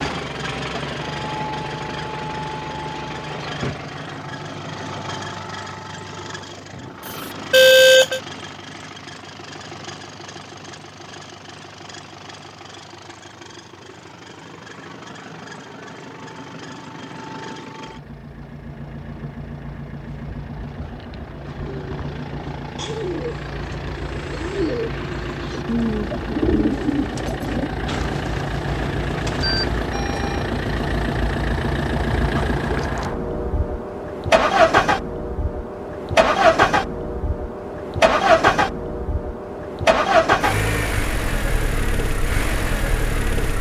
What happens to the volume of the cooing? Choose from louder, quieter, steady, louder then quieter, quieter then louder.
louder then quieter.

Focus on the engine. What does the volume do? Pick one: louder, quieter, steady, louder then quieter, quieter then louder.
quieter then louder.